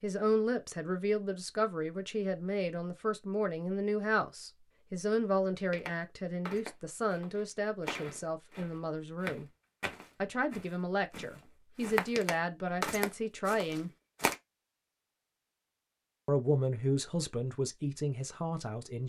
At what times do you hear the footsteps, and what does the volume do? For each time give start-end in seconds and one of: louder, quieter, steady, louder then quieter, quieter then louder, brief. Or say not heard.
5.7-14.3 louder.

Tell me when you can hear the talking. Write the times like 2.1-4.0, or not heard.
0.0-9.4, 10.2-13.9, 16.2-19.0.